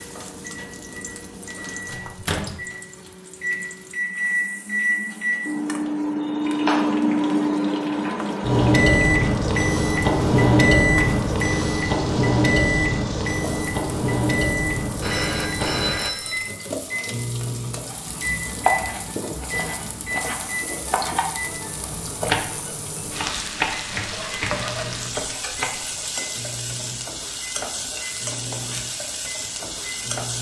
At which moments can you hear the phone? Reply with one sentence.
The phone can be heard from 15.0 to 16.5 s.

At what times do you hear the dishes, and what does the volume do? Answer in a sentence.
The dishes can't be heard in this clip.